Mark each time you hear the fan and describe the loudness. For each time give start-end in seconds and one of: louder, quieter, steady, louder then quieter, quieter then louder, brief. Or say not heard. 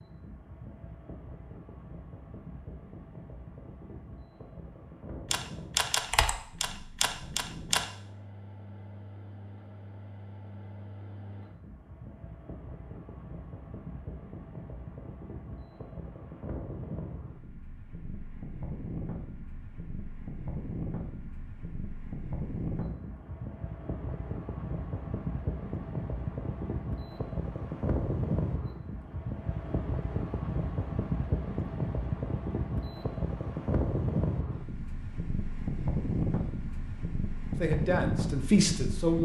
0.0-39.2 louder.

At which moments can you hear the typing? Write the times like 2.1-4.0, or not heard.
5.3-7.8.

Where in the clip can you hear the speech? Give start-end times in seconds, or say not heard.
37.6-39.2.